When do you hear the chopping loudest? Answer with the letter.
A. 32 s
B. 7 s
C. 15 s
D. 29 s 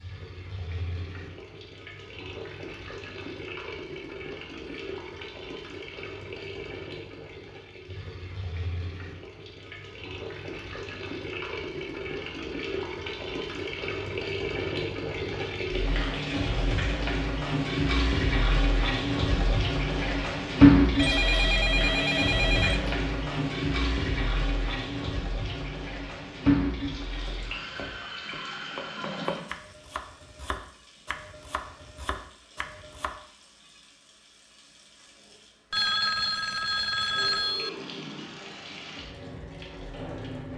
D.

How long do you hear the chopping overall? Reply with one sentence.
You can hear the chopping for 6 seconds altogether.